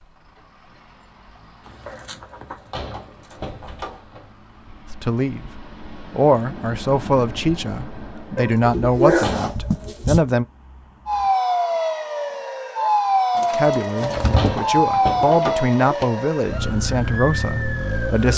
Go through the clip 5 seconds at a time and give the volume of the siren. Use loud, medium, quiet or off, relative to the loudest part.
off, off, loud, loud.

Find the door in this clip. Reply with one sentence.
The door can be heard from 2.3 to 4.3 s, from 9.1 to 9.6 s and from 14.2 to 15.7 s.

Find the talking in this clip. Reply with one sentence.
The talking can be heard from 4.8 to 10.4 s and from 13.5 to 18.3 s.